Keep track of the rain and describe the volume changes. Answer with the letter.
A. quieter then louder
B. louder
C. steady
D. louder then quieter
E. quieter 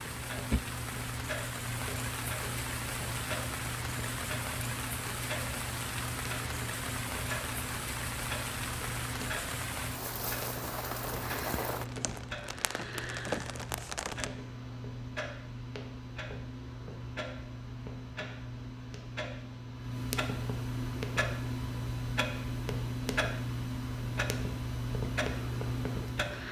C.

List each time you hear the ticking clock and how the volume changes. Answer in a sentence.
You can hear the ticking clock from 0.0 to 26.4 s, getting louder.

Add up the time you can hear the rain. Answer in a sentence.
The rain can be heard for 14 seconds in total.